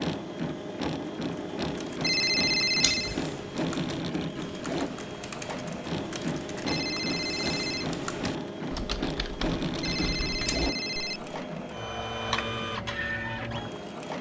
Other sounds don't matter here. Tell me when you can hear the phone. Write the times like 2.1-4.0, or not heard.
2.0-3.1, 6.7-7.9, 9.8-11.2.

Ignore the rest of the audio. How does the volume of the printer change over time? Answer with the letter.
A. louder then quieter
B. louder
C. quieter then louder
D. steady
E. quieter
D.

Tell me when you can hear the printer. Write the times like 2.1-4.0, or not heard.
0.0-14.1.